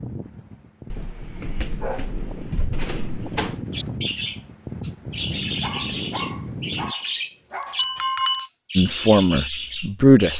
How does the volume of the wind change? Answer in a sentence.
The loudness of the wind goes up.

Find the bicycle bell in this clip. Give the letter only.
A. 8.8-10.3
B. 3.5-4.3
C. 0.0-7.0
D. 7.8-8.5
D.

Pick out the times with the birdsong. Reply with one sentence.
The birdsong can be heard from 3.7 to 10.3 s.